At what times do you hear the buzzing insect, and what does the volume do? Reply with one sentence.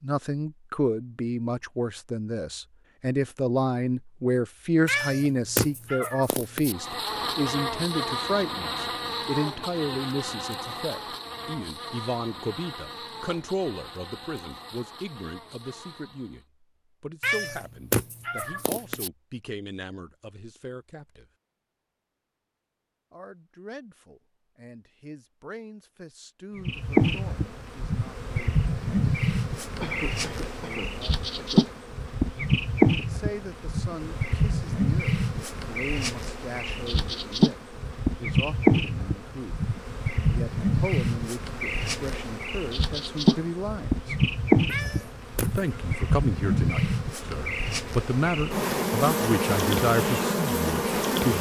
The buzzing insect can be heard from 6.7 to 16.4 s, getting quieter; and from 26.6 to 51.3 s, at a steady volume.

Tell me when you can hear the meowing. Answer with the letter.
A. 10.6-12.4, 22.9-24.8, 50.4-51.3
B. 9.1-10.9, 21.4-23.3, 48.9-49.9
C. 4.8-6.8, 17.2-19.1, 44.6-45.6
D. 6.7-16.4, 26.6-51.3
C.